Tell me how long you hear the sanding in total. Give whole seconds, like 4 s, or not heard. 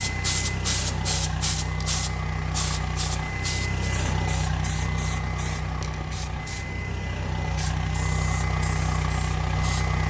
not heard.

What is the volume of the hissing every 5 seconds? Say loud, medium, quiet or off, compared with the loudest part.
loud, medium.